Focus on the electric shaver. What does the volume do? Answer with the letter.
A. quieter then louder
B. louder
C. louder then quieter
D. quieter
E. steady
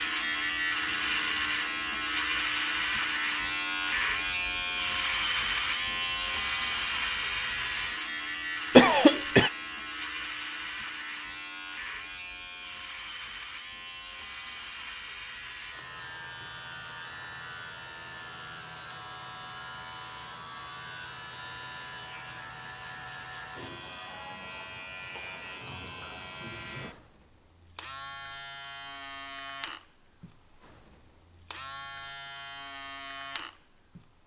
D.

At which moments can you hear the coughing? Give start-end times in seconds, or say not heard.
8.8-9.5.